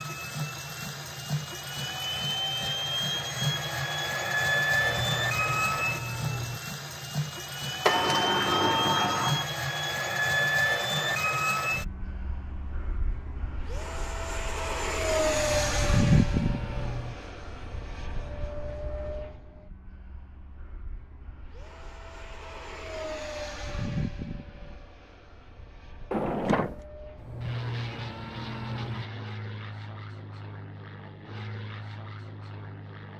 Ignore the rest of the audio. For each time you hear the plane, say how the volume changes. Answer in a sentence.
The plane can be heard from 0.0 to 33.1 s, getting quieter.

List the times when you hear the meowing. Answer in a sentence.
You can hear the meowing from 4.7 to 6.6 s, from 15.2 to 17.1 s and from 27.1 to 29.1 s.